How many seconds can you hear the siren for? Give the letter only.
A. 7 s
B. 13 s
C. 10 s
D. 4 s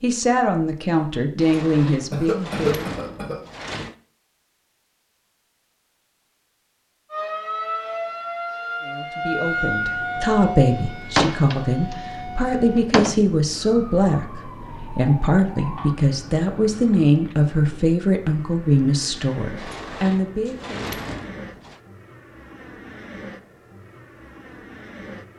C.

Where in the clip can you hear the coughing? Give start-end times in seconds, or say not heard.
2.1-3.4.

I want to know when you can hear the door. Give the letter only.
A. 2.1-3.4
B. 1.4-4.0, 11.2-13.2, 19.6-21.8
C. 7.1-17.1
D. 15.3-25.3
B.